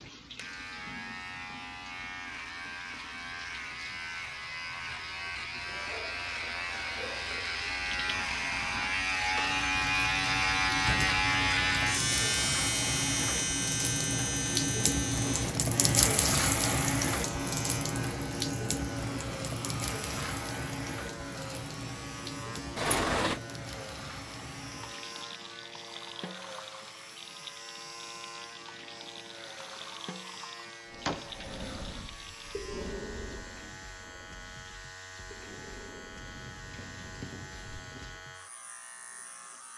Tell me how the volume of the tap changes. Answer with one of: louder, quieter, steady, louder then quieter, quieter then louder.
louder then quieter.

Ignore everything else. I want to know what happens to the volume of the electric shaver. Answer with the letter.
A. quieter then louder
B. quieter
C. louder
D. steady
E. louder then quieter
E.